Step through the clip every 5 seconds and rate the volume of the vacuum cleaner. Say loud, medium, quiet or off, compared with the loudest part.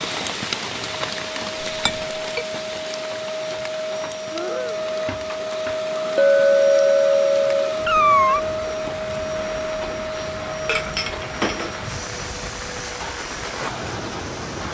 medium, loud, medium.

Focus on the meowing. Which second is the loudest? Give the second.
8 s.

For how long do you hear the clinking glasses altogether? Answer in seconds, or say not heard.
3 s.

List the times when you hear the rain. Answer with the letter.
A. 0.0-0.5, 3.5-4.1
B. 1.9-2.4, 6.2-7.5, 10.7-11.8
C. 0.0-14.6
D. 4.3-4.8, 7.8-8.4
C.